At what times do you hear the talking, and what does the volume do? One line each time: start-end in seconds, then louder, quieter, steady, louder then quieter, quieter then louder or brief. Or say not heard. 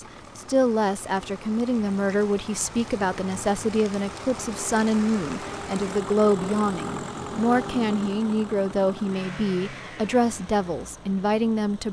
0.0-11.8 steady.